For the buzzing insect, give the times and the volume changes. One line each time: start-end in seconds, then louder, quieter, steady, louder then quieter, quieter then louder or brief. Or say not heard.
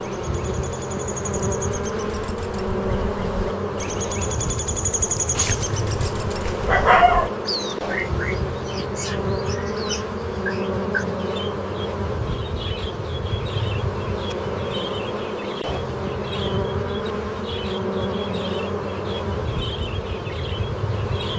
0.0-21.3 steady.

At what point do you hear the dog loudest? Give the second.
7 s.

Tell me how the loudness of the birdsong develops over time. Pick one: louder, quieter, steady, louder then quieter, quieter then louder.
louder then quieter.